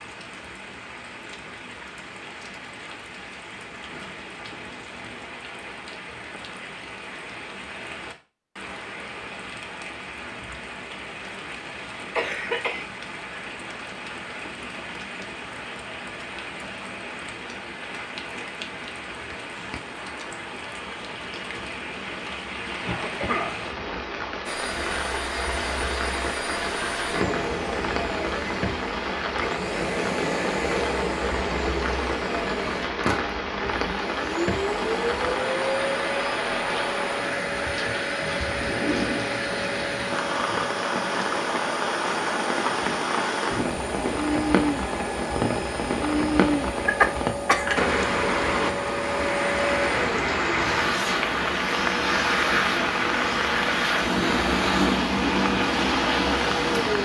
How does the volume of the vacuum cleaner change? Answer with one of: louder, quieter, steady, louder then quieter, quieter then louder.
steady.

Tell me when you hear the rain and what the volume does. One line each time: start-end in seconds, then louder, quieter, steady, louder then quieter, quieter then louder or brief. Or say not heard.
0.0-57.0 louder.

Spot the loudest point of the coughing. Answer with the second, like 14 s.
47 s.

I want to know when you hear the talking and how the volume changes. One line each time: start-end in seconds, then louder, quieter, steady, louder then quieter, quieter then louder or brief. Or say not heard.
not heard.